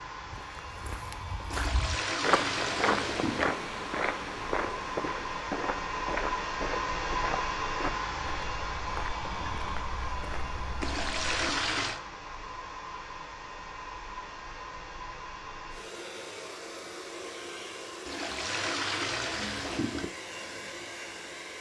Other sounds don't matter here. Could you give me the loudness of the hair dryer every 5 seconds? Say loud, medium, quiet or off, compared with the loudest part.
medium, loud, medium, medium, medium.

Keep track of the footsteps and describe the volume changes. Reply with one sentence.
The volume of the footsteps goes down.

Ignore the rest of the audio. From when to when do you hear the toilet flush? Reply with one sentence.
You can hear the toilet flush from 1.5 to 3.5 s, from 10.8 to 12.0 s and from 18.1 to 20.1 s.